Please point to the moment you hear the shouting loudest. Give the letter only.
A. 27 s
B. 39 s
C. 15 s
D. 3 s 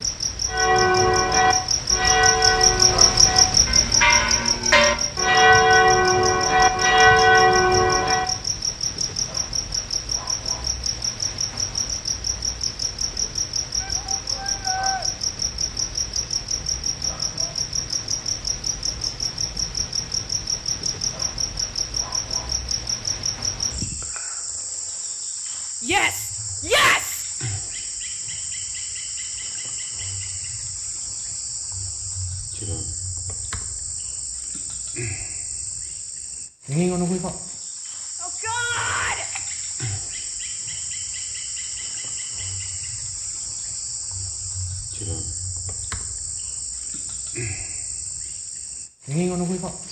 A.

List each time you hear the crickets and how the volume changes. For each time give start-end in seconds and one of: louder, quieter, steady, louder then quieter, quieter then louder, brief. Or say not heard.
0.0-49.8 quieter.